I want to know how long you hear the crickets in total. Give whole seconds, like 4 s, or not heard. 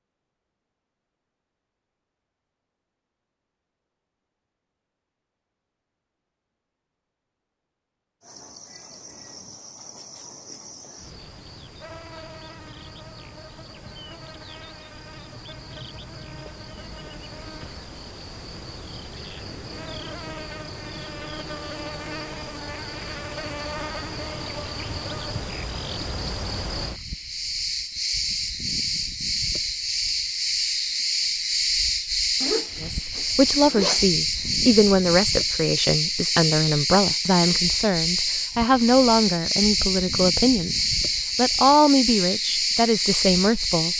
36 s.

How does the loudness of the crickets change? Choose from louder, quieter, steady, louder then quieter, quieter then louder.
louder.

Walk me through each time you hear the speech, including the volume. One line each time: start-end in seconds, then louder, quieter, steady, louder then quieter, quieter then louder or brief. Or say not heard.
32.8-40.8 steady
41.4-43.9 brief.